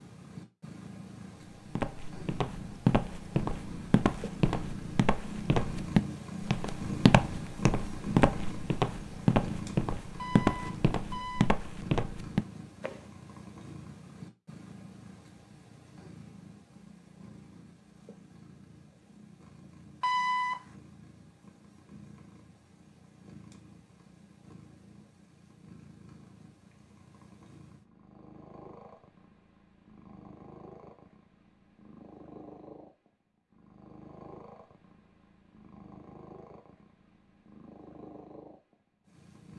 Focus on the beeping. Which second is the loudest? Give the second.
20 s.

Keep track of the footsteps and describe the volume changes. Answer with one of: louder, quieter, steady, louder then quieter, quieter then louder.
steady.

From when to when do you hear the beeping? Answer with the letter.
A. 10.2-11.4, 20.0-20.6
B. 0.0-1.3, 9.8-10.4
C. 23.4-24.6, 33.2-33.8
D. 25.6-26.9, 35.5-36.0
A.